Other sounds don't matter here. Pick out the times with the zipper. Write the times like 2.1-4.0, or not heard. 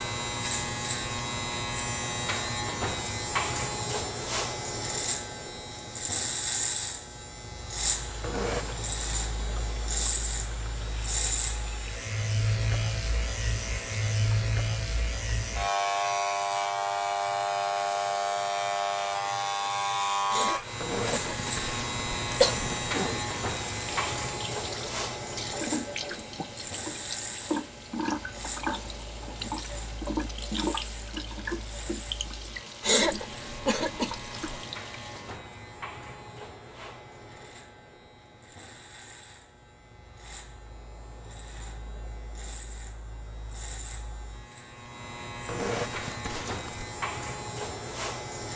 8.2-8.8, 20.8-23.2, 45.5-46.9.